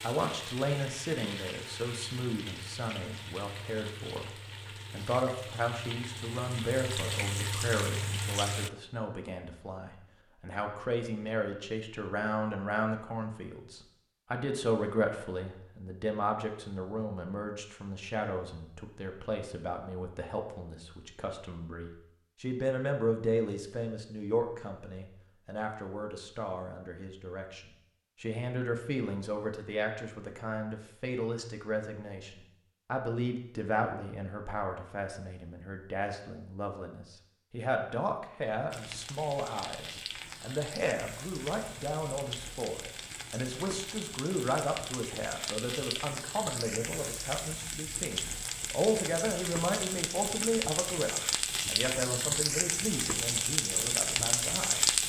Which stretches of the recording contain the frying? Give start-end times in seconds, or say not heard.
0.0-8.7, 38.7-55.0.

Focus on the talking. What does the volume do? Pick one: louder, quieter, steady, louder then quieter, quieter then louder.
steady.